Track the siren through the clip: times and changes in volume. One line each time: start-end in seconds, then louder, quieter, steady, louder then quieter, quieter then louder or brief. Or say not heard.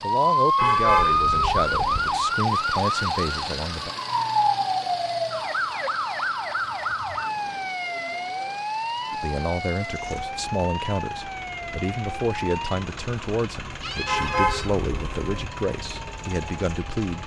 0.0-17.1 quieter.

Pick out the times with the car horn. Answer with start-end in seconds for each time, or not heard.
0.6-2.2, 14.1-15.5.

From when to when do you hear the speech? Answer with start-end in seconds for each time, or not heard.
0.0-4.0, 9.1-17.2.